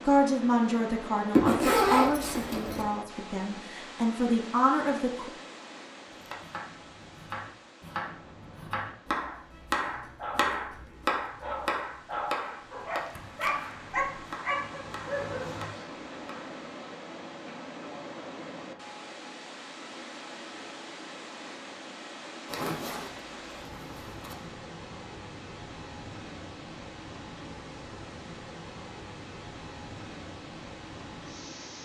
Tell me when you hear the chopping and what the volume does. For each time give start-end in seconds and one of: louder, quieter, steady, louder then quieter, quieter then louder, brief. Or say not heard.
6.0-16.6 louder then quieter.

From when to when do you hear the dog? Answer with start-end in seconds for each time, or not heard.
10.2-15.7.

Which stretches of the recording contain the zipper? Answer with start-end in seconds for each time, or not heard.
1.3-2.9, 22.4-24.4.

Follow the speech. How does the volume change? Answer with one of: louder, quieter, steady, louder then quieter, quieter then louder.
quieter then louder.